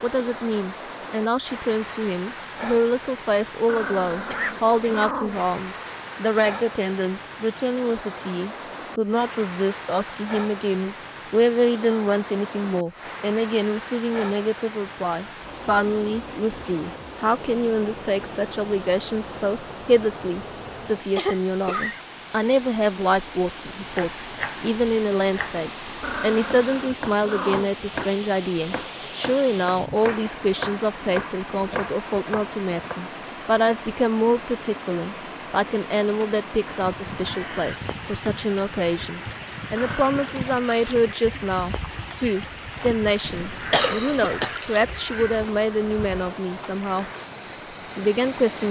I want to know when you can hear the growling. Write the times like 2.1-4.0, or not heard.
3.6-5.5, 26.0-27.8, 39.8-40.4.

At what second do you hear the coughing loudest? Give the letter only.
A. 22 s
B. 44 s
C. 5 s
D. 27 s
B.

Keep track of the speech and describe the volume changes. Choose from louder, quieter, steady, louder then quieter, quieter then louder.
steady.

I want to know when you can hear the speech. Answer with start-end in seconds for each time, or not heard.
0.0-48.6.